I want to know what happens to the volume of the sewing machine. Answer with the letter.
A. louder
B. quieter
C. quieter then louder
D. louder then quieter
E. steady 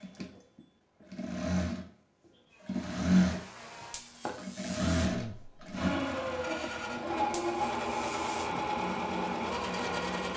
D.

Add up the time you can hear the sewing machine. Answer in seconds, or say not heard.
10 s.